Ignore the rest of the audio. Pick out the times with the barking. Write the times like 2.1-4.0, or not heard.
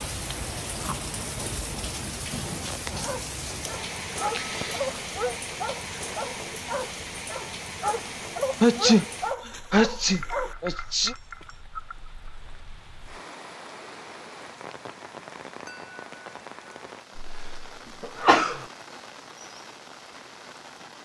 3.0-10.6.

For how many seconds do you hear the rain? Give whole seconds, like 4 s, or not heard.
21 s.